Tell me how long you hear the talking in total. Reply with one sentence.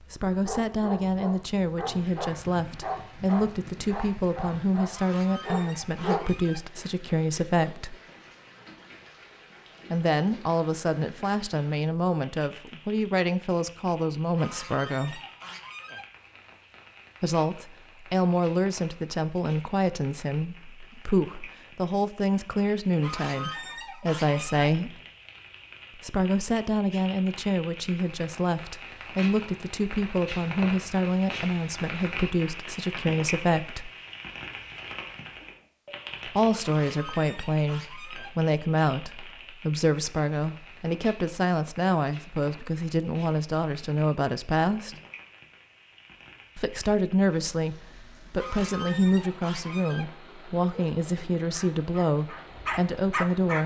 You can hear the talking for 45 seconds altogether.